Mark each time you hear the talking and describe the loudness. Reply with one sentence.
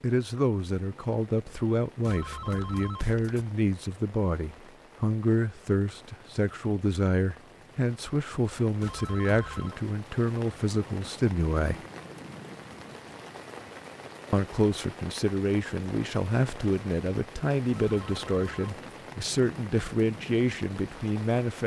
You can hear the talking from 0.0 to 11.8 s, at a steady volume; and from 14.3 to 21.6 s, at a steady volume.